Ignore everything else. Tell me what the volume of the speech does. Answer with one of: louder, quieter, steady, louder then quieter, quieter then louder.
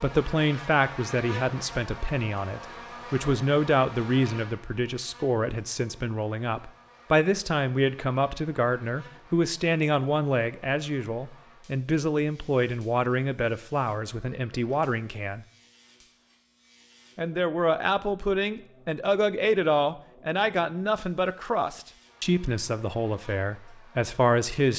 steady.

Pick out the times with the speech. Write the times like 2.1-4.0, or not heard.
0.0-15.4, 17.1-24.7.